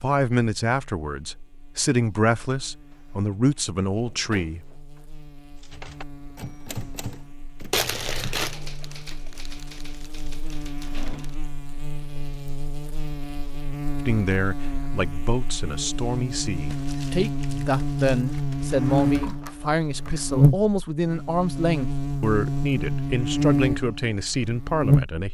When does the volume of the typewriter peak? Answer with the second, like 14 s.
7 s.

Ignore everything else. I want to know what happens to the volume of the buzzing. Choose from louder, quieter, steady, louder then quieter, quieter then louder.
louder.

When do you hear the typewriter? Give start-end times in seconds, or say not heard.
5.6-11.5.